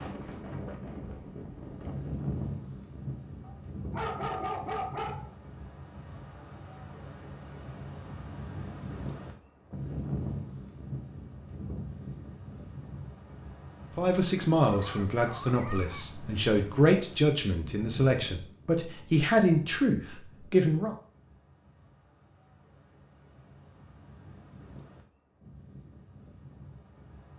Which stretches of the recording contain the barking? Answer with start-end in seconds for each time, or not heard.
3.4-5.3, 14.7-16.1.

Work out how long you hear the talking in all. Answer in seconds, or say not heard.
7 s.